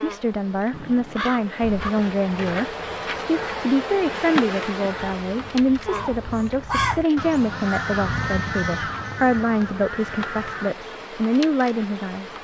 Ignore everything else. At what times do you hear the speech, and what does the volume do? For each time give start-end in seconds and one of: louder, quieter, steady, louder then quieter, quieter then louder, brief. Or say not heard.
0.0-12.3 steady.